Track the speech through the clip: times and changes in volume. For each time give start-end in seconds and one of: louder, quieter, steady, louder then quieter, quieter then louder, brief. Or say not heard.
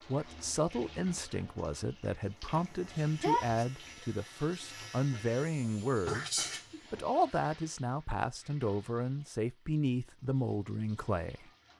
0.1-11.5 steady.